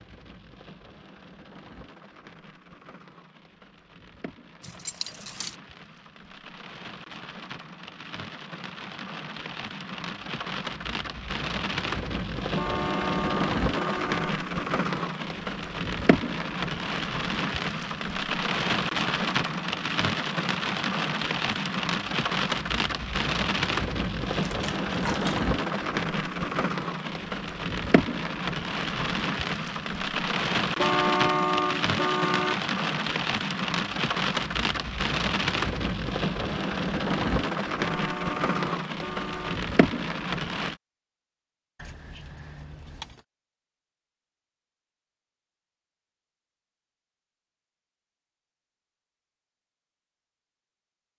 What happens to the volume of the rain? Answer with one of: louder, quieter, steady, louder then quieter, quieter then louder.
louder.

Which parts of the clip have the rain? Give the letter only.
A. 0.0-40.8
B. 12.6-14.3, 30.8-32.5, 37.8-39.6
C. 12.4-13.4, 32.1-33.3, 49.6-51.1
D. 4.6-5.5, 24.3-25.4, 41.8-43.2
A.